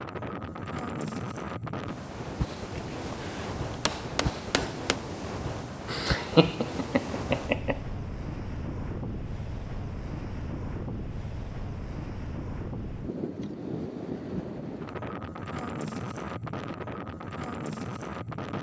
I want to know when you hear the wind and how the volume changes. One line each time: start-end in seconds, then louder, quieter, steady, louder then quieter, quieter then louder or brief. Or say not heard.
0.0-18.5 steady.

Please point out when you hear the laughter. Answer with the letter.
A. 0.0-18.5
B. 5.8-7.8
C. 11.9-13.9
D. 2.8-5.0
B.